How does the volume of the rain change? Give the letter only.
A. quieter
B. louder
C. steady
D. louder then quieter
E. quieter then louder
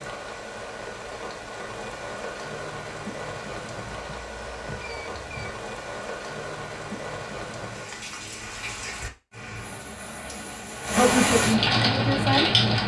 B.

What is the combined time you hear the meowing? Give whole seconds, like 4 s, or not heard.
2 s.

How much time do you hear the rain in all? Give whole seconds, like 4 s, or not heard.
13 s.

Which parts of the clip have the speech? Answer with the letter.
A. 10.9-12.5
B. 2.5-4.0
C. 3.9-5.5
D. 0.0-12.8
A.